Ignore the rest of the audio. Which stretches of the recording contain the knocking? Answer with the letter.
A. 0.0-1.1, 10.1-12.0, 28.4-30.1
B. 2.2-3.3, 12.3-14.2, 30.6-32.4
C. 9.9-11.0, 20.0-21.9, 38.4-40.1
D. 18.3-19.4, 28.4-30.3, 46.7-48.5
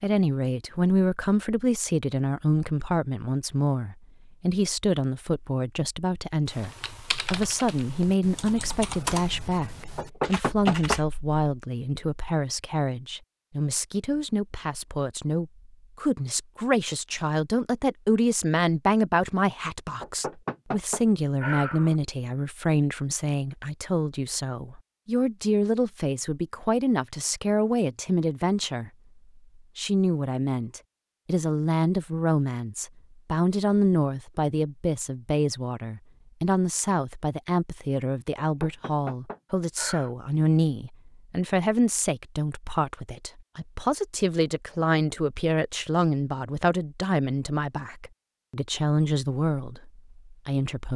C.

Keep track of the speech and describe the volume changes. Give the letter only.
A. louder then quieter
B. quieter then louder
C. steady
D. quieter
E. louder
C.